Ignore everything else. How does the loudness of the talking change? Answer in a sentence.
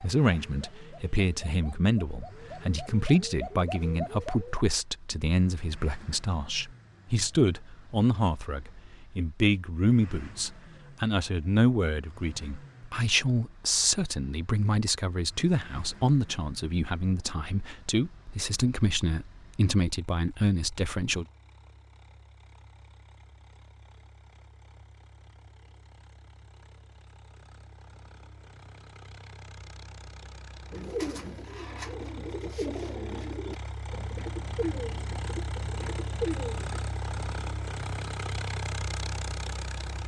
The volume of the talking stays about the same.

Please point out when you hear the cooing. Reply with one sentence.
You can hear the cooing from 0.0 to 4.6 s and from 30.7 to 36.9 s.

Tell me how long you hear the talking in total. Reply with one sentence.
The talking can be heard for 21 seconds in total.